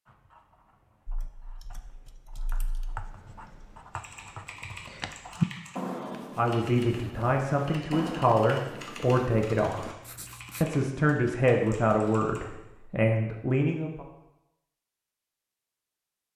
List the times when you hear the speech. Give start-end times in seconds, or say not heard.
6.3-9.9, 10.6-14.1.